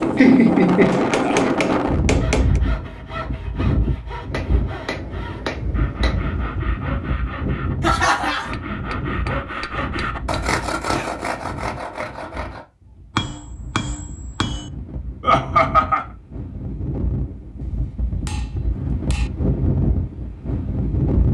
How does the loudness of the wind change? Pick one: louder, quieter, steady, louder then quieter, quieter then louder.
quieter then louder.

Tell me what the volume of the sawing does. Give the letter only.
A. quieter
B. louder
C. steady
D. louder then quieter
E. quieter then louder
B.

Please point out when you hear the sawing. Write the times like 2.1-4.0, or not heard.
2.1-12.7.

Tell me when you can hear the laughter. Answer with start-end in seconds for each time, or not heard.
0.1-1.5, 7.8-8.5, 15.2-16.1.